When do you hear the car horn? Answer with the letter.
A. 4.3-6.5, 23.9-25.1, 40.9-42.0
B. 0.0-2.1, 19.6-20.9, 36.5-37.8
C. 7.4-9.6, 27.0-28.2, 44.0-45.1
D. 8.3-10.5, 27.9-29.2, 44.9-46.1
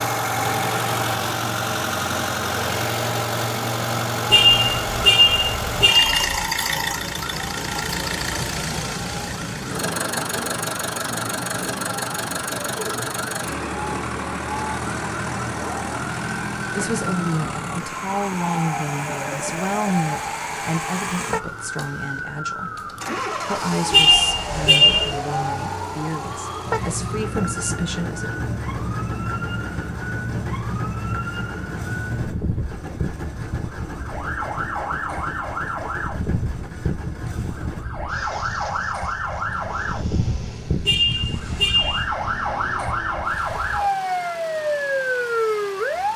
A.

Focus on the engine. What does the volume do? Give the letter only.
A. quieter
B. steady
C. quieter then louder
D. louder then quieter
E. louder
A.